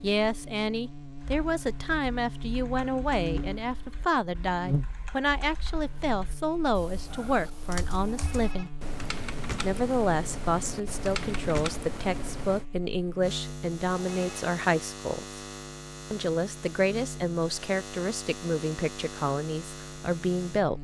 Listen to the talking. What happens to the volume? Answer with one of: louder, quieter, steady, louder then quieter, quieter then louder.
steady.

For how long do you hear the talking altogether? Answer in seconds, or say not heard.
19 s.